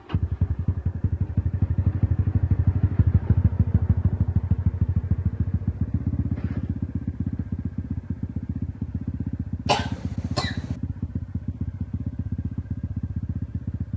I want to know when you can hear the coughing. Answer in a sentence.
You can hear the coughing from 9.7 to 10.8 s.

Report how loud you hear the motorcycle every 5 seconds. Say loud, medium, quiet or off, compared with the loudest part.
loud, loud, medium.